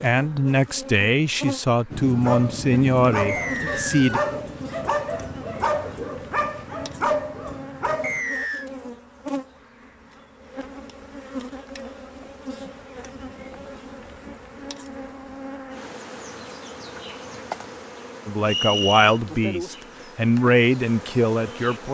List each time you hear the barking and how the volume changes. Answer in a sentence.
The barking can be heard from 1.9 to 8.2 s, at a steady volume.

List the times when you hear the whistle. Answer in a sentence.
You can hear the whistle from 3.2 to 4.3 s, from 8.0 to 8.7 s and from 18.4 to 19.2 s.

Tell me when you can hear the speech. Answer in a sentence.
The speech can be heard from 0.0 to 4.2 s and from 18.2 to 21.8 s.